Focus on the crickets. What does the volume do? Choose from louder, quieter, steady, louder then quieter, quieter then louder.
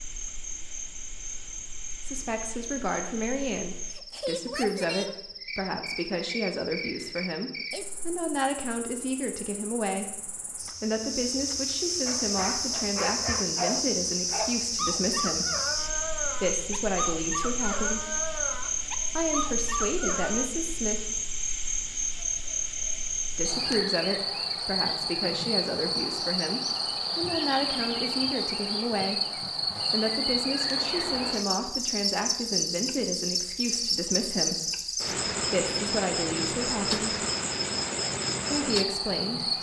louder.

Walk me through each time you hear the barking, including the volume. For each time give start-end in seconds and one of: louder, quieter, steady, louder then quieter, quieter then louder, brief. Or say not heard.
12.1-20.5 steady.